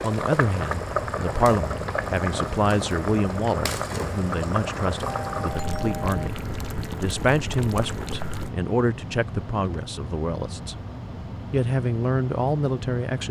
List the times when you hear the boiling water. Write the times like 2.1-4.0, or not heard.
0.0-8.6.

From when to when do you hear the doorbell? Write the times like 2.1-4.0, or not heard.
5.0-6.2.